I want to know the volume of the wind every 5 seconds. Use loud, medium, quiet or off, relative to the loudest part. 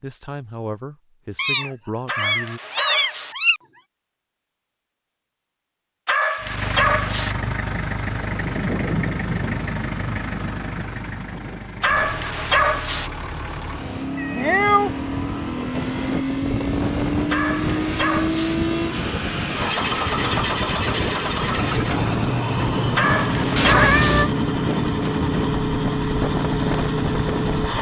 off, loud, medium, loud, loud, loud.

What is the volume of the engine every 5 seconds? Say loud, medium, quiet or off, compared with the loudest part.
off, medium, medium, loud, loud, loud.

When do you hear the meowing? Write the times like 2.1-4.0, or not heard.
1.4-3.6, 14.2-14.9, 23.6-24.3.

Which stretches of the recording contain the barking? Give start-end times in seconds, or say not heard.
2.0-3.4, 6.0-7.3, 11.8-13.1, 17.3-18.6, 22.9-24.2.